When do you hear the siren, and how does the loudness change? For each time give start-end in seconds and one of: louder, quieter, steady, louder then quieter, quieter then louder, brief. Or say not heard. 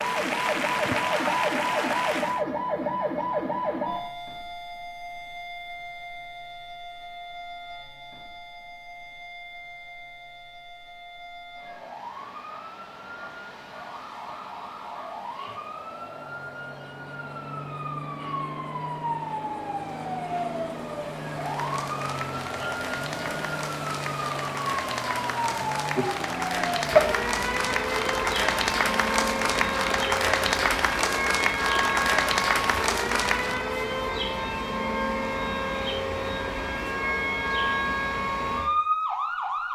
0.0-39.7 quieter then louder.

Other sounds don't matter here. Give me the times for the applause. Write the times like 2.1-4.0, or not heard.
0.0-2.5, 21.4-33.6.